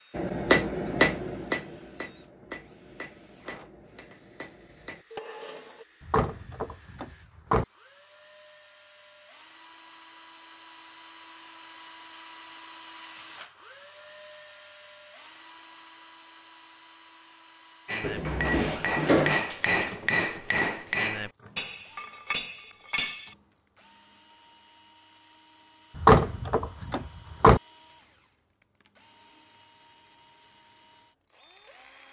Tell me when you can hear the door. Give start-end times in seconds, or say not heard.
6.0-7.7, 18.0-19.4, 25.9-27.6.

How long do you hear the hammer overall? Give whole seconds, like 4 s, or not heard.
11 s.